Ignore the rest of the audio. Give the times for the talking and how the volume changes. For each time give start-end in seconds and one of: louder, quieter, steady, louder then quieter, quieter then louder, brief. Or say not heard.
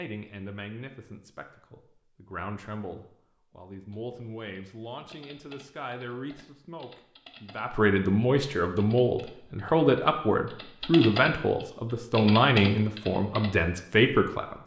0.0-14.6 louder.